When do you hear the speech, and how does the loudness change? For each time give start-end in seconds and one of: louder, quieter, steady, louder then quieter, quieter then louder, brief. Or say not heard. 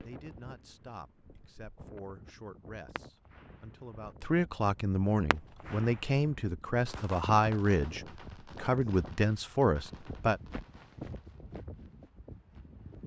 0.0-10.4 louder.